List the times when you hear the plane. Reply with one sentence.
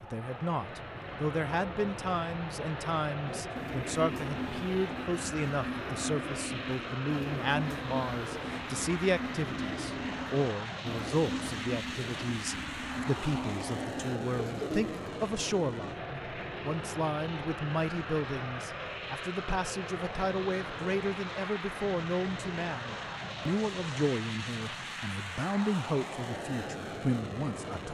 The plane can be heard from 0.0 to 27.8 s.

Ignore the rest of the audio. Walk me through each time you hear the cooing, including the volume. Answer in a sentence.
The cooing can be heard from 3.2 to 15.1 s, at a steady volume.